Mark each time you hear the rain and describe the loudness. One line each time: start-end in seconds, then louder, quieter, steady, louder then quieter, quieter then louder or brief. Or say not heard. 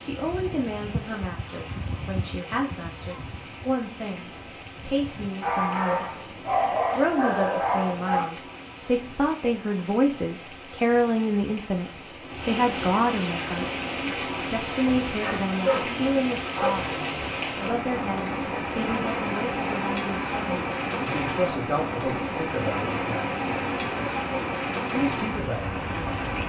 0.0-26.4 louder.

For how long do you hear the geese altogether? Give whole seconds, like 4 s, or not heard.
5 s.